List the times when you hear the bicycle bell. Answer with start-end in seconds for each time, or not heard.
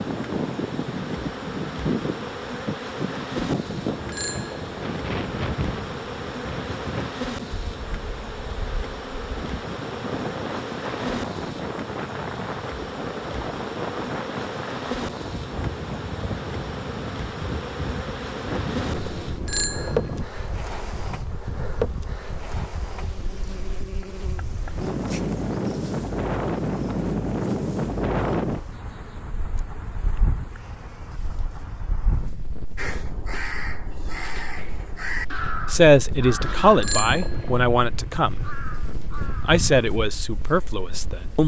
3.9-4.9, 19.1-20.2, 36.4-37.6.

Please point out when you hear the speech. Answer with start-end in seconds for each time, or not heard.
35.7-38.4, 39.5-41.4.